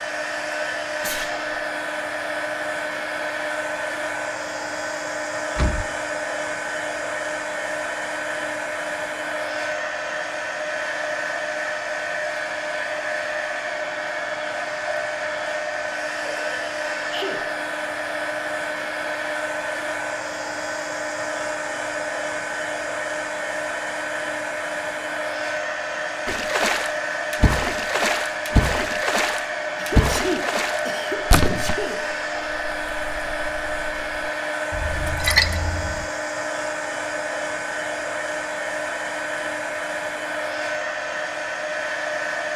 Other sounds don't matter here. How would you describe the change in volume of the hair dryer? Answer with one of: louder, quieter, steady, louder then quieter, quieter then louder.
steady.